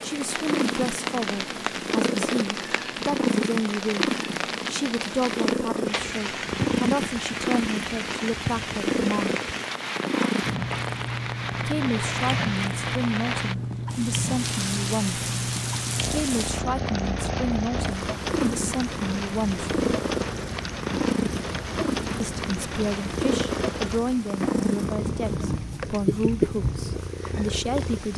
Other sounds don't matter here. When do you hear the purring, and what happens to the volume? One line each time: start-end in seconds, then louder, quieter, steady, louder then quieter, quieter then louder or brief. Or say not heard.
0.0-28.1 steady.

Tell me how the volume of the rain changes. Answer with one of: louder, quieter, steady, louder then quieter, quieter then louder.
steady.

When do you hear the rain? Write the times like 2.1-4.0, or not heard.
0.0-28.1.